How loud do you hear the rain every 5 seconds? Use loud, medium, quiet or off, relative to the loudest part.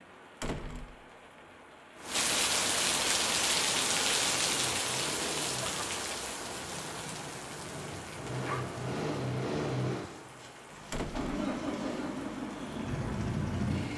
loud, medium, quiet.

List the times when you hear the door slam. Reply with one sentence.
You can hear the door slam from 0.4 to 0.9 s and from 10.9 to 11.3 s.